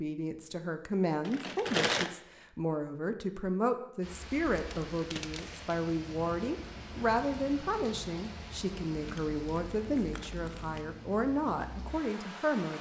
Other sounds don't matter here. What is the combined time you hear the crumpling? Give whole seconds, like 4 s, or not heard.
4 s.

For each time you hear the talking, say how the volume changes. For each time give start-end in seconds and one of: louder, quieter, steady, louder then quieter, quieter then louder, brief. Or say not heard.
0.0-12.7 steady.